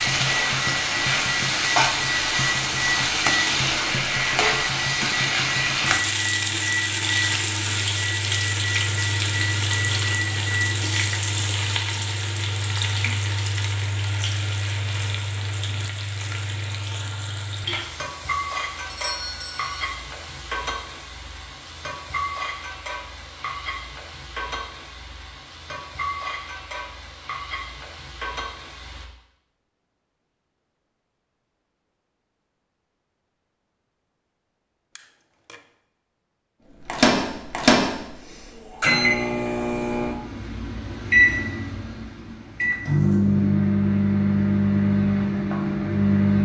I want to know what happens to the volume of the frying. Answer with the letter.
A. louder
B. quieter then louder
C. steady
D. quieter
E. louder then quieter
D.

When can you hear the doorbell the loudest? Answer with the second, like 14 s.
19 s.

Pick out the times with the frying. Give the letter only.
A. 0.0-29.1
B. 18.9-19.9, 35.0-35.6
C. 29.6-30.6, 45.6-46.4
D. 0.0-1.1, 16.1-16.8
A.